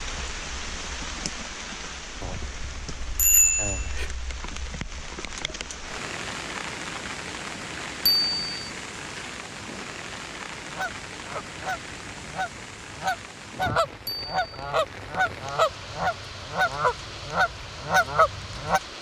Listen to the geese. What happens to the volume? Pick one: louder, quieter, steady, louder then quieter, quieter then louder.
louder.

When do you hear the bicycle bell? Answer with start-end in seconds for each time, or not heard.
2.2-4.1, 8.1-8.7, 14.1-14.8.